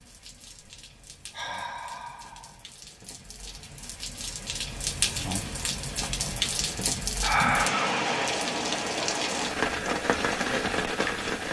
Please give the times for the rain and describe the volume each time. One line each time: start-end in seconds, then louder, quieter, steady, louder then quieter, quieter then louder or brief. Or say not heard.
0.0-11.4 louder.